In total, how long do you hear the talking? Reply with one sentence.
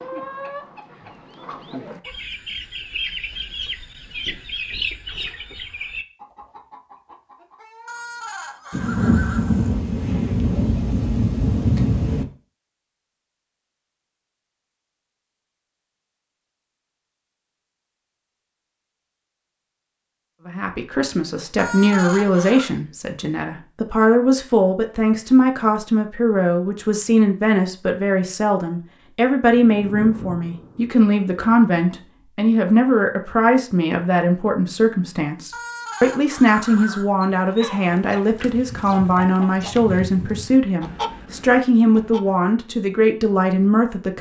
The talking can be heard for 24 seconds in total.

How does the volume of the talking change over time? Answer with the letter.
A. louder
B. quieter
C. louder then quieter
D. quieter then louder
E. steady
E.